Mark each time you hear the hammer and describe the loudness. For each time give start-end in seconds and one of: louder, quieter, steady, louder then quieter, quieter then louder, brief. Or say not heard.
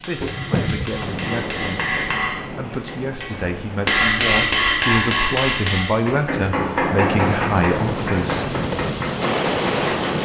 0.0-10.2 louder then quieter.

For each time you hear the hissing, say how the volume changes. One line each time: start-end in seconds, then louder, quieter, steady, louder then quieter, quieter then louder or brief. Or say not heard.
0.0-10.2 quieter then louder.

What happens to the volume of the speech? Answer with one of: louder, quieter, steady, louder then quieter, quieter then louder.
louder.